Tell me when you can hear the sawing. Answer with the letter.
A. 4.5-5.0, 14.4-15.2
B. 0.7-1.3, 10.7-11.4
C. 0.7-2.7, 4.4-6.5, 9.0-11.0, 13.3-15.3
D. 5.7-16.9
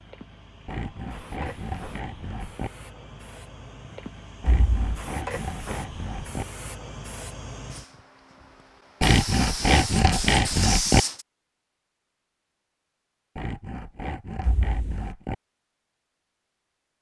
C.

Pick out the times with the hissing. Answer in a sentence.
The hissing can be heard from 0.0 to 11.2 s.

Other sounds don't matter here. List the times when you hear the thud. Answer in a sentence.
You can hear the thud from 4.5 to 5.0 s and from 14.4 to 15.2 s.